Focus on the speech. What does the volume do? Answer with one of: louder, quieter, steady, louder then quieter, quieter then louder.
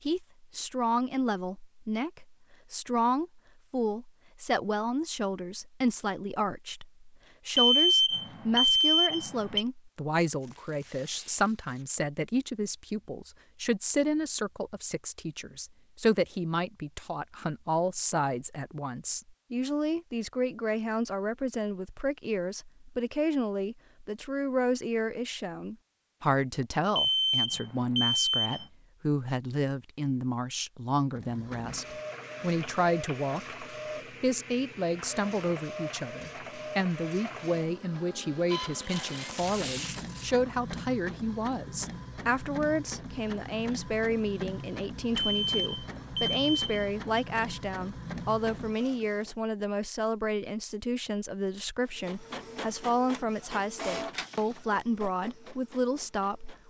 steady.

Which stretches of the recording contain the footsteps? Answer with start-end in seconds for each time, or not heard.
not heard.